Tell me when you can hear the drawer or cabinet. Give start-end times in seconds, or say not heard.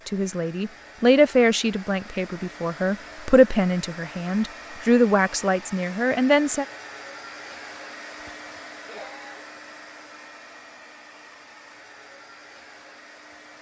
not heard.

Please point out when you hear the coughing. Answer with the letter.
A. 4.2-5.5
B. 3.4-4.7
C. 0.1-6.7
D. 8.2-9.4
D.